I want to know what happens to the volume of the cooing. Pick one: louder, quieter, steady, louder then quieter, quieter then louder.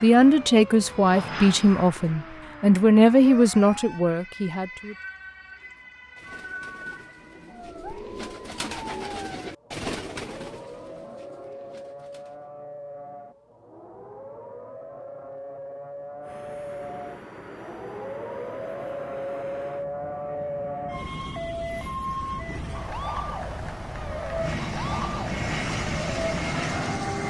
louder then quieter.